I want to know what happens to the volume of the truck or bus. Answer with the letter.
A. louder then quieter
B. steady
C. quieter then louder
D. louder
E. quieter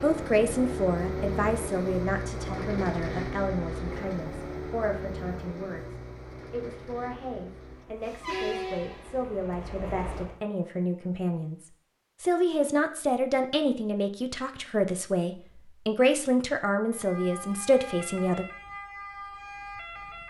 C.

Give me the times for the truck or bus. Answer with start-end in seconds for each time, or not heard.
0.0-10.4.